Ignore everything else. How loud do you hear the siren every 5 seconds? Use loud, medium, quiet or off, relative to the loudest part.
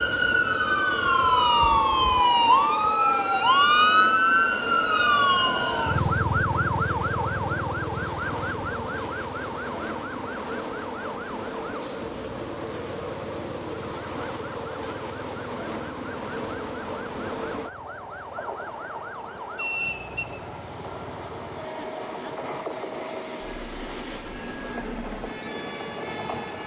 loud, medium, quiet, quiet, quiet, quiet.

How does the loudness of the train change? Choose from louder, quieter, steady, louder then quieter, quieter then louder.
steady.